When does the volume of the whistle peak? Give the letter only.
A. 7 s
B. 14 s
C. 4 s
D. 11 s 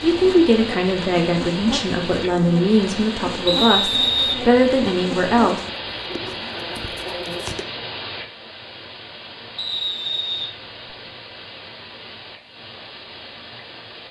C.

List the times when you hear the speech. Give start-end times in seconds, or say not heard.
0.0-5.6.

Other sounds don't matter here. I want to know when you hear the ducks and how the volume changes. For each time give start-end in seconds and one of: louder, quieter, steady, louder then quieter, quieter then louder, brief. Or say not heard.
not heard.